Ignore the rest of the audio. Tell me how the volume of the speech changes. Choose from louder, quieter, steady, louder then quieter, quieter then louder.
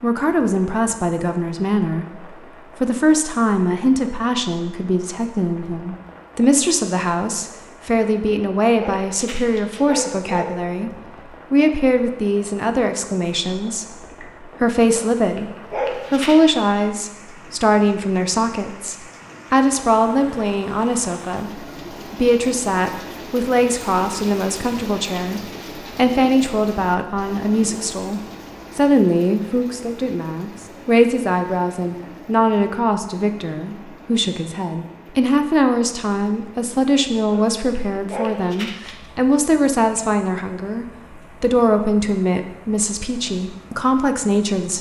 steady.